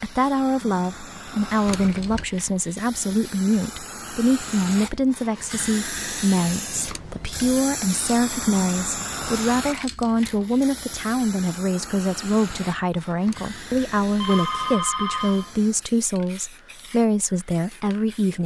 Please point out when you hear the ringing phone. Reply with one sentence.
You can hear the ringing phone from 1.6 to 2.2 s, from 6.8 to 7.6 s and from 13.2 to 15.7 s.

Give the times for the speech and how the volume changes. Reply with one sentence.
You can hear the speech from 0.0 to 18.4 s, at a steady volume.